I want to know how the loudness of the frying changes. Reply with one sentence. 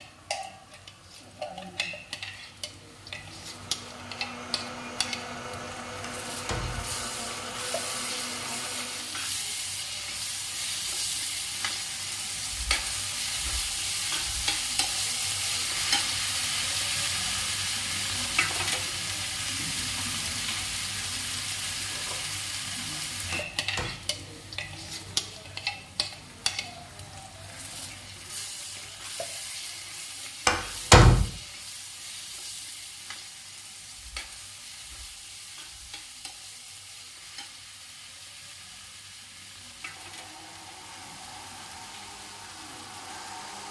The volume of the frying goes up, then down.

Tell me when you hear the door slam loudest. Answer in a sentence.
The loudest moment of the door slam is at 31 seconds.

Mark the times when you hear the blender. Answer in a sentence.
The blender can be heard from 0.0 to 9.2 s and from 39.9 to 43.6 s.